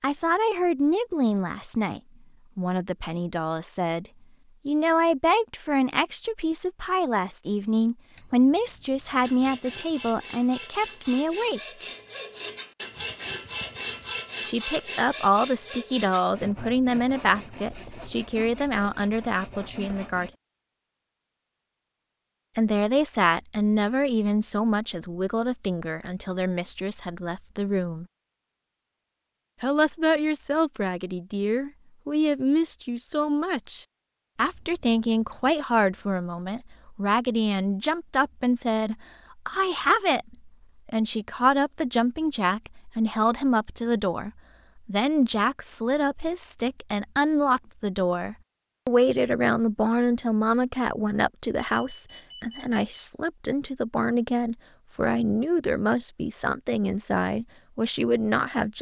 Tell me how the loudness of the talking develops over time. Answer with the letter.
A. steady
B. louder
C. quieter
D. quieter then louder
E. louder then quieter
A.